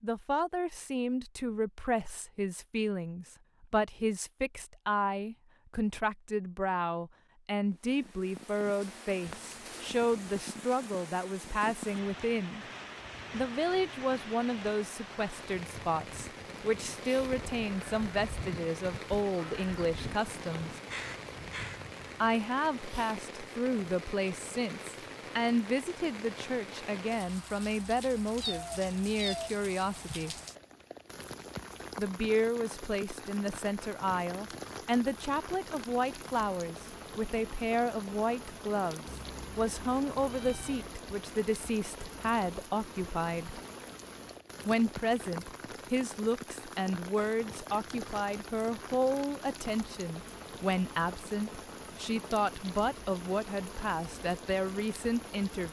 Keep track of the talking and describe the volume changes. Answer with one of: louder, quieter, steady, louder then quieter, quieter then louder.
steady.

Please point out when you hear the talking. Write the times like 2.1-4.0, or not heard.
0.0-12.7, 13.3-20.8, 22.2-30.4, 31.9-43.6, 44.6-55.6.